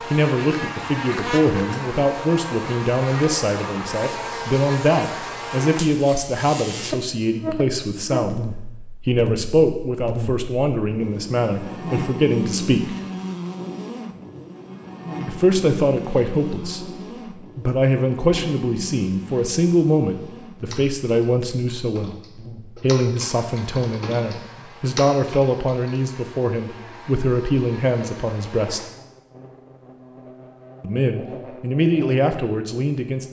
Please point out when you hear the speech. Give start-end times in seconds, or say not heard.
0.0-12.9, 15.2-16.9, 17.6-22.1, 22.8-28.8, 30.8-33.2.